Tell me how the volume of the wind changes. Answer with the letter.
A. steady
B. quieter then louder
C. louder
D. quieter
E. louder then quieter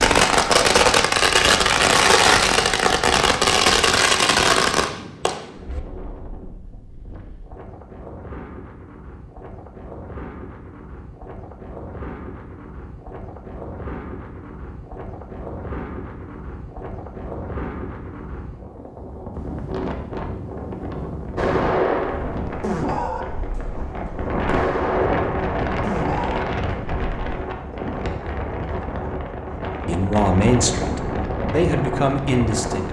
C.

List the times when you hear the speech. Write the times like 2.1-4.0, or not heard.
29.9-32.8.